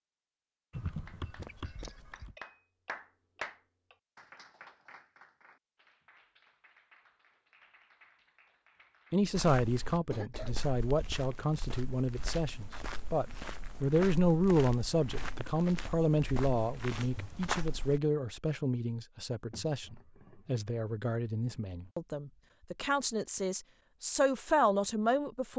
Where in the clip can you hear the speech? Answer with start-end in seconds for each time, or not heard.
9.1-25.5.